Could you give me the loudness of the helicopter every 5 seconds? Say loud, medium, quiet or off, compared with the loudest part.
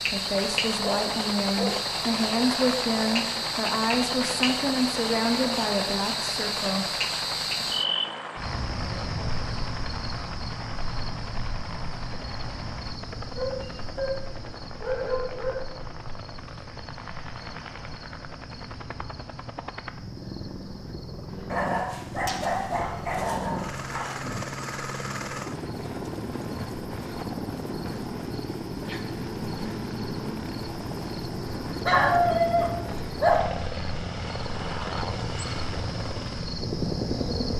loud, loud, medium, medium, loud, loud, loud, loud.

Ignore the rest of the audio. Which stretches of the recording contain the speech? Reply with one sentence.
The speech can be heard from 0.0 to 6.9 s.